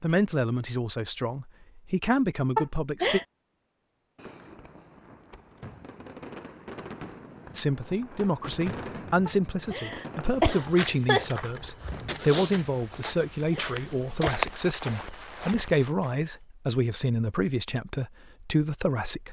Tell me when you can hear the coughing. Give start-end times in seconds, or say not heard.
2.5-3.2, 9.2-11.2, 13.1-14.4.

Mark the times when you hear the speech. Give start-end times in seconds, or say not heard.
0.0-3.2, 7.5-19.2.